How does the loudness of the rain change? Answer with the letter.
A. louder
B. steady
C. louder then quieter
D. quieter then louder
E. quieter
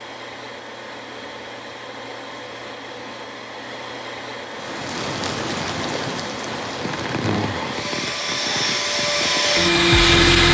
E.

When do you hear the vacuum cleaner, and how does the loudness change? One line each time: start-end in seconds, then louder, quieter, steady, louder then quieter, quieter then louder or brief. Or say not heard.
0.0-10.4 louder.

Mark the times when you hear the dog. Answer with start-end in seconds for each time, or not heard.
not heard.